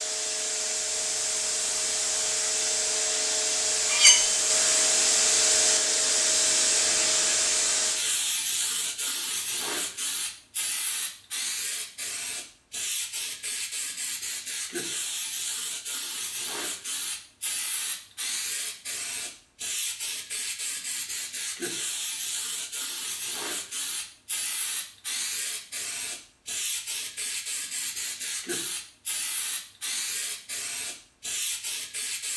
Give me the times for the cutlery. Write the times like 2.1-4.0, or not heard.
3.9-4.3.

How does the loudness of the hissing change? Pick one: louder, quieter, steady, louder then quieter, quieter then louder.
quieter.